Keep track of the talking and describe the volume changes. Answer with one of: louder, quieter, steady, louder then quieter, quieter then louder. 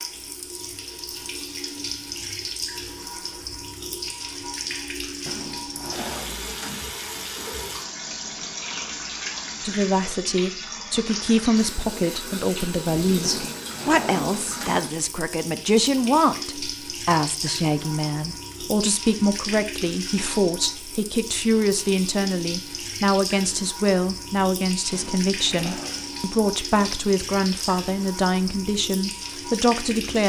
steady.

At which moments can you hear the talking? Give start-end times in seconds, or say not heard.
9.6-30.2.